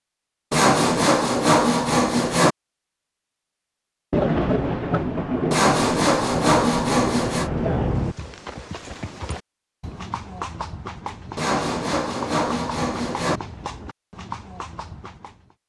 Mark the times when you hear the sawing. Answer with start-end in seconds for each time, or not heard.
0.5-2.5, 5.5-7.5, 11.3-13.4.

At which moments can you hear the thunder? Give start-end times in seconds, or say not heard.
4.1-8.2.